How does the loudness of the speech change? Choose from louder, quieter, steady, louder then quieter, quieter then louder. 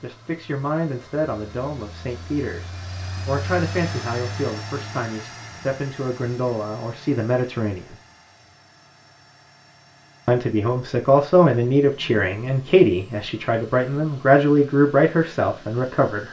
louder.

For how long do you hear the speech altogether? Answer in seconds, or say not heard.
14 s.